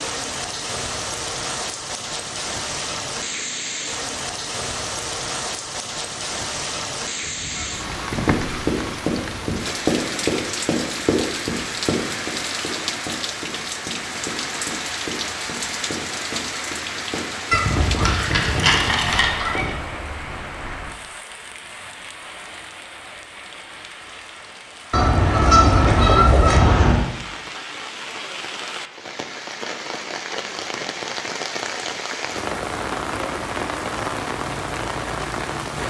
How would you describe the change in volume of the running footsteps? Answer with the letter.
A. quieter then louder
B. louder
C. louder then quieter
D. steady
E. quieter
E.